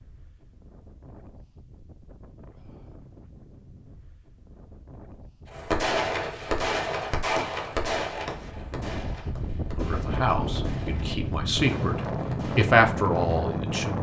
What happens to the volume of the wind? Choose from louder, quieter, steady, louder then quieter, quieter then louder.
louder.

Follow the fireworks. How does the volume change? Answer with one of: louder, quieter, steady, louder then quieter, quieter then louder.
quieter.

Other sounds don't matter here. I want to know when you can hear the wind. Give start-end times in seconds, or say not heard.
0.0-13.9.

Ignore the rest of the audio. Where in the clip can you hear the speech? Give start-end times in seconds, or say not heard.
9.8-13.9.